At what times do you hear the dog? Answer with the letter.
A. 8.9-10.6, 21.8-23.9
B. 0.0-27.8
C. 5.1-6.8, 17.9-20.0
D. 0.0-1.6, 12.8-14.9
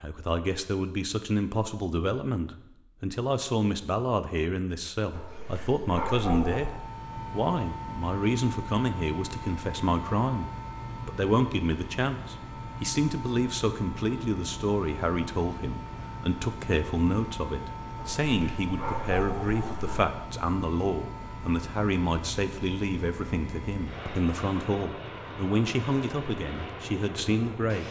C.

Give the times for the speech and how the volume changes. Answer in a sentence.
You can hear the speech from 0.0 to 27.8 s, at a steady volume.